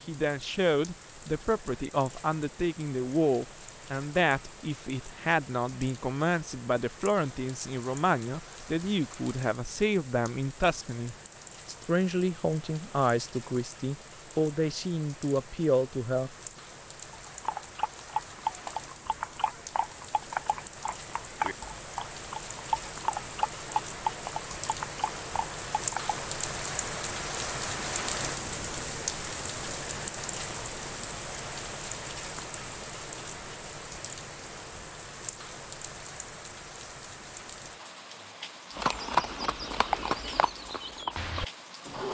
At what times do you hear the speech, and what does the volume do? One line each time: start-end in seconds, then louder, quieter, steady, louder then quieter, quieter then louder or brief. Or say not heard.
0.1-16.3 steady.